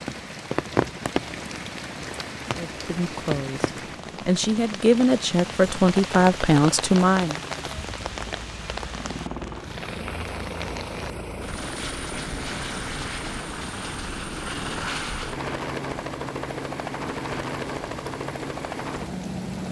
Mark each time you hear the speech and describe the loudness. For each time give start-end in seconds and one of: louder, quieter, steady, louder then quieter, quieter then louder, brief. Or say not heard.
2.5-7.3 louder.